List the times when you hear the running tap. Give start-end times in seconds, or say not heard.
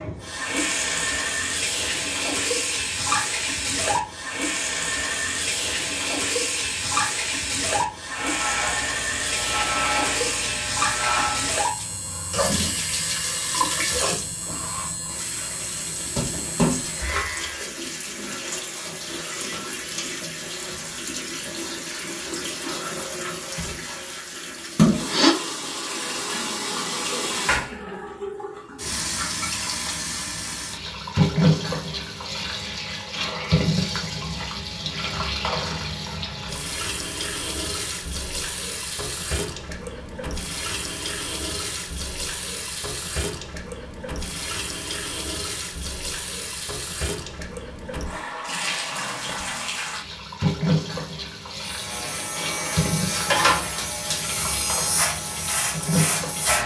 0.0-56.6.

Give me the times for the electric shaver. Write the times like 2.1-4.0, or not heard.
8.1-17.7, 51.5-56.6.